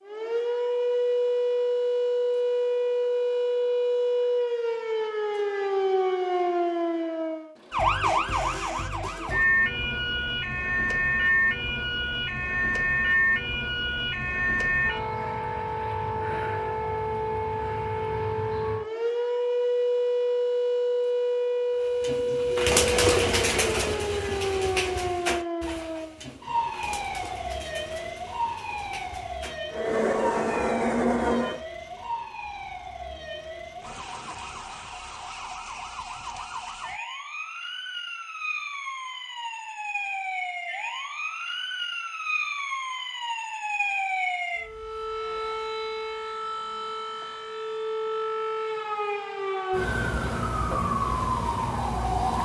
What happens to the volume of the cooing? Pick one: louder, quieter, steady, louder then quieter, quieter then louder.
quieter.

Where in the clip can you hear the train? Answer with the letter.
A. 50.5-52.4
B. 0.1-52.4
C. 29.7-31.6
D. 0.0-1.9
C.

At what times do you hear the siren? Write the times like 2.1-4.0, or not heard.
0.1-52.4.